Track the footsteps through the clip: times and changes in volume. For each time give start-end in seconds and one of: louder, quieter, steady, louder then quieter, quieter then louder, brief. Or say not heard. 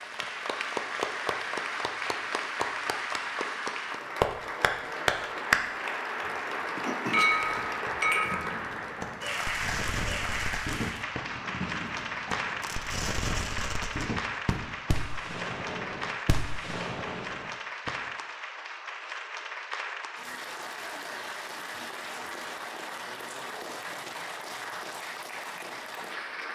not heard.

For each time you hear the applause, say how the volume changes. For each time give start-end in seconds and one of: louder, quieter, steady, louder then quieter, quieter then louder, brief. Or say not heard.
0.0-26.5 quieter.